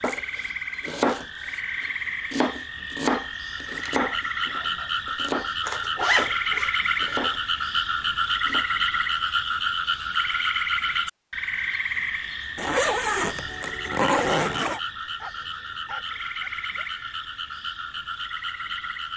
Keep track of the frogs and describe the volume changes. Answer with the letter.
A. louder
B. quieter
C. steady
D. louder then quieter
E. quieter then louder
D.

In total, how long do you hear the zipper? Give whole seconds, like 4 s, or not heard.
3 s.